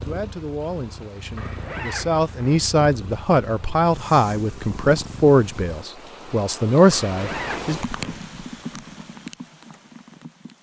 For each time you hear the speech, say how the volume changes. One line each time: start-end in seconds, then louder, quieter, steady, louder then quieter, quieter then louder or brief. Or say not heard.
0.1-7.8 louder.